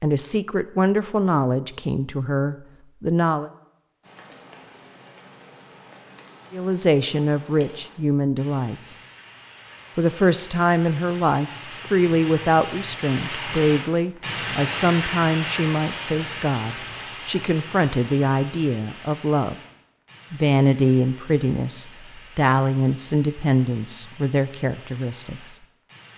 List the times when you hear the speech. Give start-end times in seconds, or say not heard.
0.0-3.5, 6.5-8.9, 9.9-19.6, 20.3-25.6.